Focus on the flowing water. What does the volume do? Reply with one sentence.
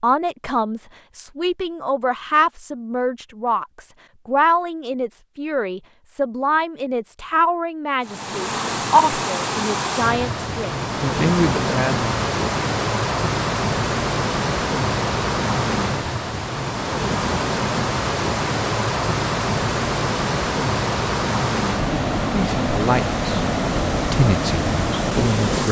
The loudness of the flowing water stays about the same.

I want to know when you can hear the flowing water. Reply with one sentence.
You can hear the flowing water from 8.0 to 25.6 s.